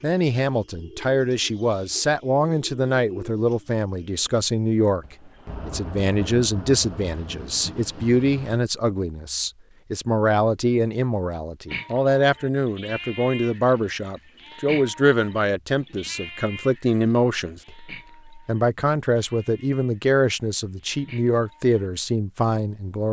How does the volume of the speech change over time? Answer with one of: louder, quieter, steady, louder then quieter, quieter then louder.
steady.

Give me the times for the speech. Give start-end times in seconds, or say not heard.
0.0-23.0.